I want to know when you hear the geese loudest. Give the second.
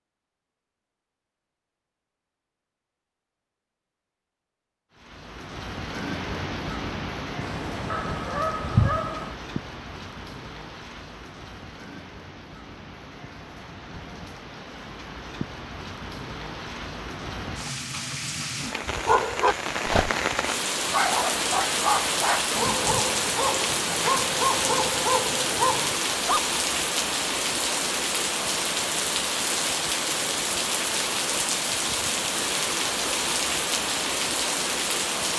9 s.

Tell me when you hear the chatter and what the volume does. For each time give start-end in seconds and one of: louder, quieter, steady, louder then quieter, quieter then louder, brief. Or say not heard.
not heard.